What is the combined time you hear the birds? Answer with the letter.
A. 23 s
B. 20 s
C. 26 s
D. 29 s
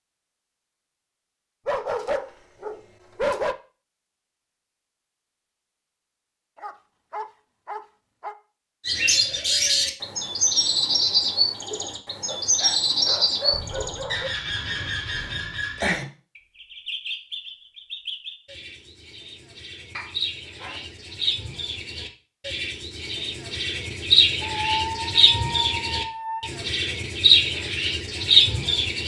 B.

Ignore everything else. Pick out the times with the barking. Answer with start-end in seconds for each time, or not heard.
1.6-3.5, 6.5-8.3, 12.2-14.3, 19.9-20.9, 24.4-26.6.